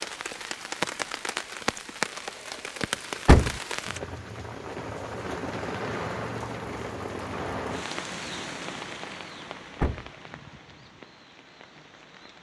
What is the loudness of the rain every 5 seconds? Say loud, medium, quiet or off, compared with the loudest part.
loud, loud, quiet.